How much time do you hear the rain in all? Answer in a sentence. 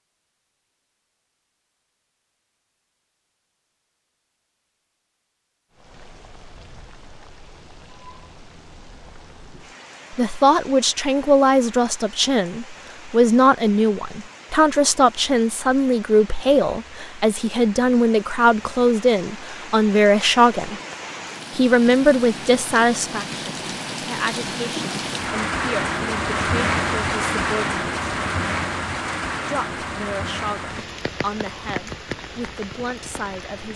You can hear the rain for 28 seconds altogether.